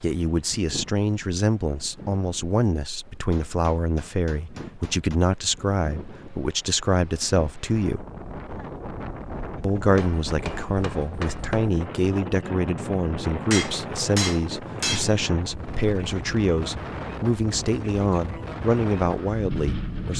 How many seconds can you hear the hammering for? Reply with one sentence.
You can hear the hammering for 5 seconds altogether.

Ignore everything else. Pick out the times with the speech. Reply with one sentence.
You can hear the speech from 0.0 to 8.1 s and from 9.6 to 20.1 s.